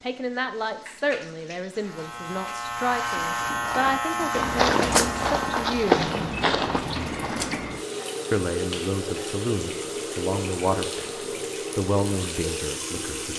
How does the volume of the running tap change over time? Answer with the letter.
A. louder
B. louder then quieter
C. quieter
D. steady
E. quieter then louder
A.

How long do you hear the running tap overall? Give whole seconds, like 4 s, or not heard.
13 s.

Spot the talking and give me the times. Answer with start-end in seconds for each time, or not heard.
0.0-6.0, 8.3-13.3.